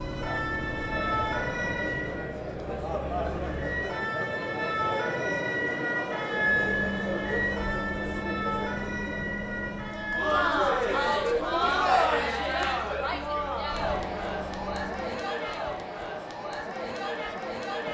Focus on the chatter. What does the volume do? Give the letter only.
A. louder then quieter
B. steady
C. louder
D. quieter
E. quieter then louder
A.